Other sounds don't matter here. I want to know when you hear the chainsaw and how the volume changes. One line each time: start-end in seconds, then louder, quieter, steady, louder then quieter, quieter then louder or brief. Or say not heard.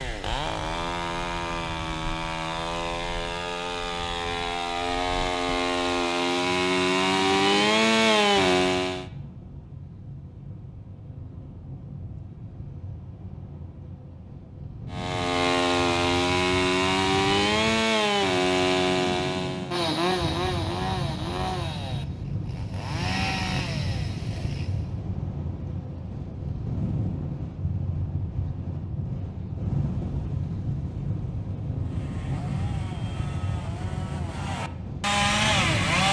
0.0-9.1 louder
14.9-24.9 quieter
31.8-36.0 louder.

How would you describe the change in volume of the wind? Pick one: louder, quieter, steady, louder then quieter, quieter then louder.
louder.